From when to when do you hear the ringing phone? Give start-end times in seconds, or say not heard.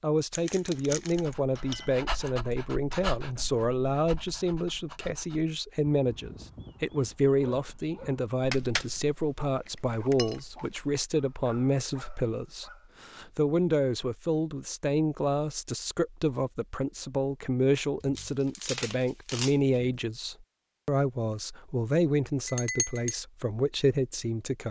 not heard.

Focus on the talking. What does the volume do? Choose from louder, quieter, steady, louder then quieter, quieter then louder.
steady.